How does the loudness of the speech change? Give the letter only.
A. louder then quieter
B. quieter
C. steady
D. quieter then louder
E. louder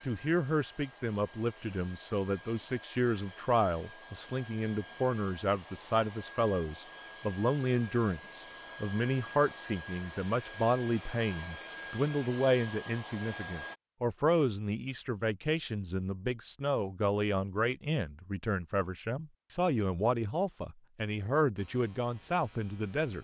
C.